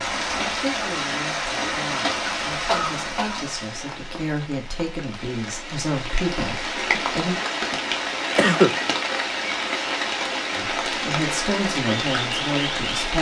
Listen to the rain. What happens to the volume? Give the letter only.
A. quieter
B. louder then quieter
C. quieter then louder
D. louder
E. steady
C.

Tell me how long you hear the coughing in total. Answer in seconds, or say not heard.
2 s.